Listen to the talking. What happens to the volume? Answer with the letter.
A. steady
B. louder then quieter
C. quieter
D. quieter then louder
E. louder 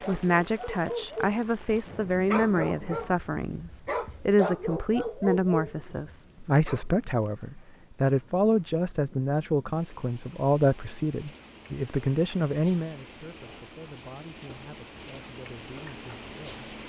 C.